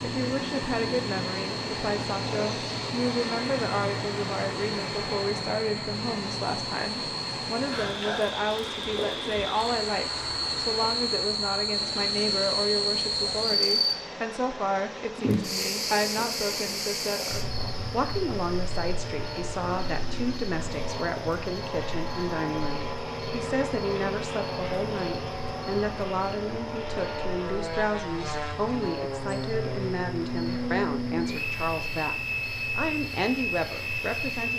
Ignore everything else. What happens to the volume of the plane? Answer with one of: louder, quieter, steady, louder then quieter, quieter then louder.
quieter then louder.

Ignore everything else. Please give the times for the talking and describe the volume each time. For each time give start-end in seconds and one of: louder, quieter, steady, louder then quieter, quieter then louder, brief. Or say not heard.
0.0-34.5 steady.